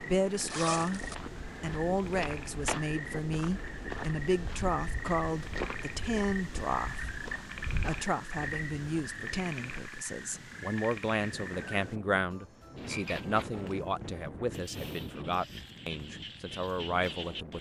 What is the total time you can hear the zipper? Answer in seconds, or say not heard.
2 s.